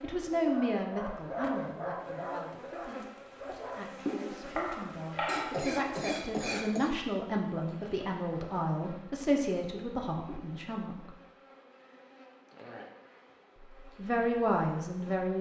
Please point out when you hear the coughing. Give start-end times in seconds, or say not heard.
5.2-6.9.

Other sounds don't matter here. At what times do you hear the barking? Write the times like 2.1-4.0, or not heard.
0.0-3.9.